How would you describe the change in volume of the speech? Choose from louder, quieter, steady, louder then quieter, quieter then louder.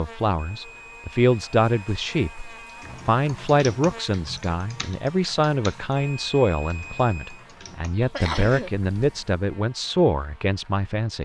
steady.